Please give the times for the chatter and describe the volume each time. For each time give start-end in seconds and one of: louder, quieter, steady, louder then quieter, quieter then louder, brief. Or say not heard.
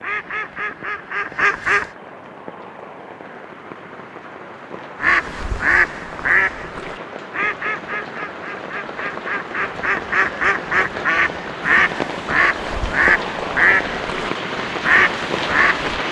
not heard.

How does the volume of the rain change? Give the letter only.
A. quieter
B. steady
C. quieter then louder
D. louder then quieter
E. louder
E.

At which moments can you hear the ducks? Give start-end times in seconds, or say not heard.
0.0-1.9, 5.0-16.0.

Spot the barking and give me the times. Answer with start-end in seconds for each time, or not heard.
not heard.